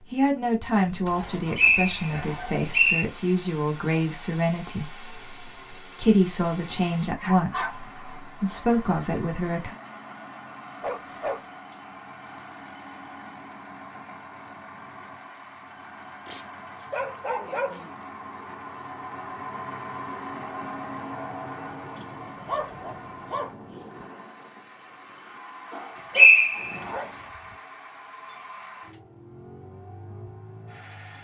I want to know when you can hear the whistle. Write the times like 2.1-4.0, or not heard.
1.6-3.0, 26.1-26.9.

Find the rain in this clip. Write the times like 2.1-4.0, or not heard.
not heard.